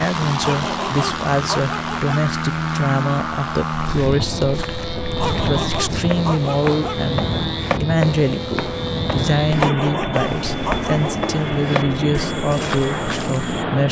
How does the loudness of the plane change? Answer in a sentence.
The volume of the plane stays about the same.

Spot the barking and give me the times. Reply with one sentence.
You can hear the barking from 0.2 to 2.2 s, from 5.0 to 7.0 s and from 9.5 to 11.1 s.